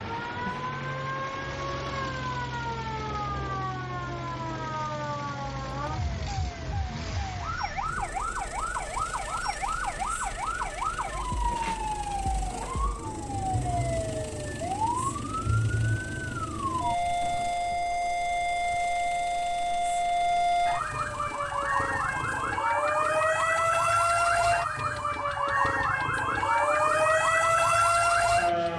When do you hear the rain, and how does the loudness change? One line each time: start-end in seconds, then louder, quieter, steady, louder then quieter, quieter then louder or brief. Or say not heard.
not heard.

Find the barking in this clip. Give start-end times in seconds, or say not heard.
not heard.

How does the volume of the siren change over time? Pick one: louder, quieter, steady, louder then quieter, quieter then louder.
louder.